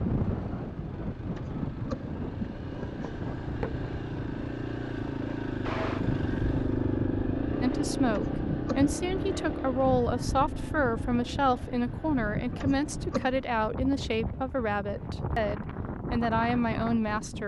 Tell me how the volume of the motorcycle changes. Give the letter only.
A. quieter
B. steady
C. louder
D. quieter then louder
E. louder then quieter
E.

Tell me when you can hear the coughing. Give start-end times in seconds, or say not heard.
1.2-3.1, 8.1-8.9, 12.5-13.3.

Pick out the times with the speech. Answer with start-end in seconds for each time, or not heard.
7.6-17.4.